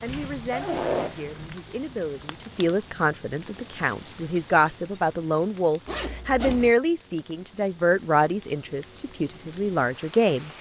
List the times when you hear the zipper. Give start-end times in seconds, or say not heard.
0.5-1.2, 5.8-6.8.